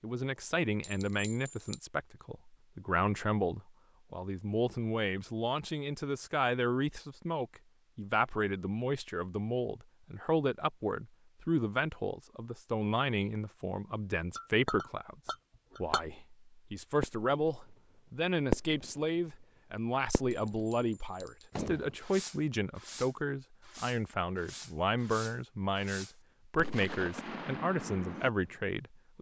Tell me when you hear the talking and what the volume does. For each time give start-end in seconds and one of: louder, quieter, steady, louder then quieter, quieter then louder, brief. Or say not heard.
0.0-15.2 steady
15.8-29.1 steady.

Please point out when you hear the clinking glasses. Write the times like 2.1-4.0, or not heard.
0.8-1.8, 14.3-16.1, 20.3-21.6.